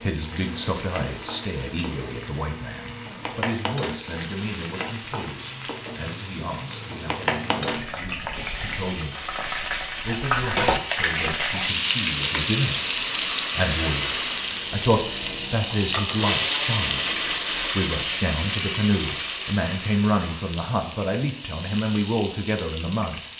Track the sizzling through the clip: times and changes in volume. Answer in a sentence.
The sizzling can be heard from 0.0 to 23.3 s, getting louder then quieter.